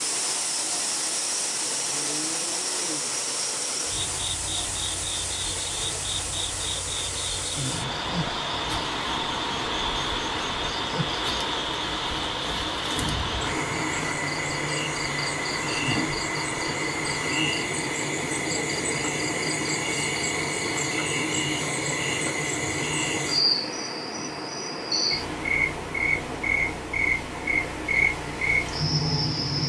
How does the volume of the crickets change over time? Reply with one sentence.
The volume of the crickets goes up.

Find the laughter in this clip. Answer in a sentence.
You can't hear the laughter here.